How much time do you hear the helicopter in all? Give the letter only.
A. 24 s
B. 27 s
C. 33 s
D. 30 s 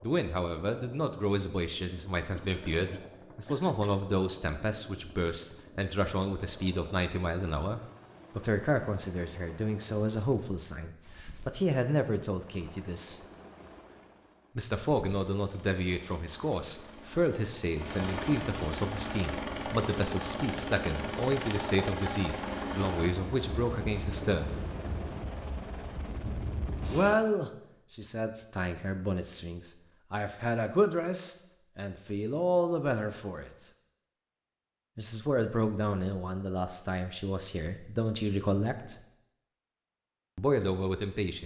B.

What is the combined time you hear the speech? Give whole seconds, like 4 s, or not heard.
35 s.